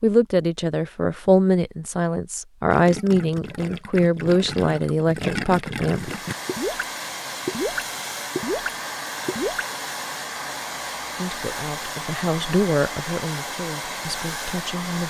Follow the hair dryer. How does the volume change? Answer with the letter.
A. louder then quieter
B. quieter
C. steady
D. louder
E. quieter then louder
C.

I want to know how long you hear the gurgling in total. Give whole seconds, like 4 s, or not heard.
6 s.